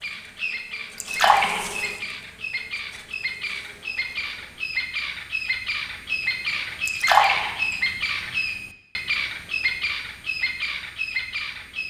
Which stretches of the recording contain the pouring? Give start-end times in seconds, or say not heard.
1.0-1.9, 6.8-7.8.